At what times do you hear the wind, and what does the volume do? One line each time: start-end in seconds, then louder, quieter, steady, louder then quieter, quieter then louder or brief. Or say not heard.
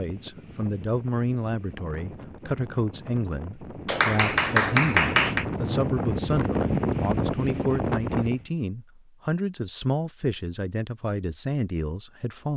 0.0-8.4 louder.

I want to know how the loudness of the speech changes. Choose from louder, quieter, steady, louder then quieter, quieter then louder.
steady.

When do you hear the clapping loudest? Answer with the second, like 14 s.
5 s.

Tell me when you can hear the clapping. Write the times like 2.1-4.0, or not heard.
3.9-5.5.